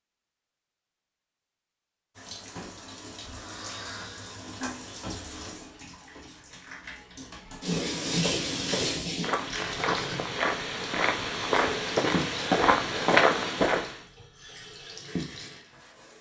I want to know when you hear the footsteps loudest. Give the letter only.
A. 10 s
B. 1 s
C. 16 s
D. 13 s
D.